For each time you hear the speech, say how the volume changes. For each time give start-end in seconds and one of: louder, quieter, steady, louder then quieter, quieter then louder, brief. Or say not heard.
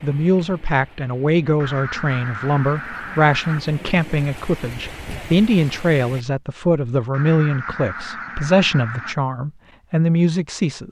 0.0-10.8 steady.